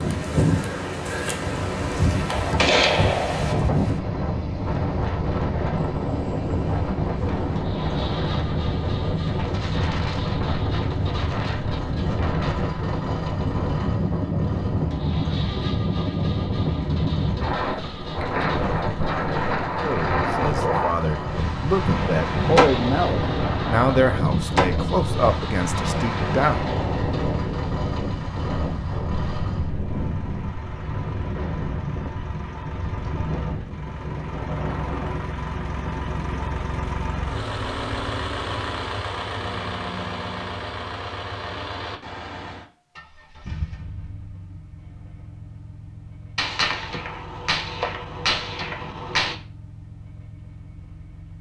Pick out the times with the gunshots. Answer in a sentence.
You can hear the gunshots from 2.2 to 3.6 s, from 21.8 to 24.6 s and from 46.4 to 49.4 s.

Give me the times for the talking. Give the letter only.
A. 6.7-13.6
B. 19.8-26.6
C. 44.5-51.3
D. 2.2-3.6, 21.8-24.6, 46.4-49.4
B.